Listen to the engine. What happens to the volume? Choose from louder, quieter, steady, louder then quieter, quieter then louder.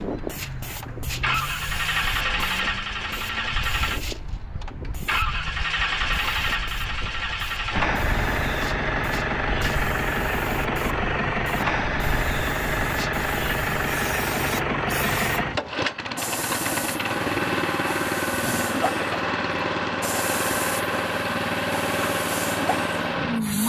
steady.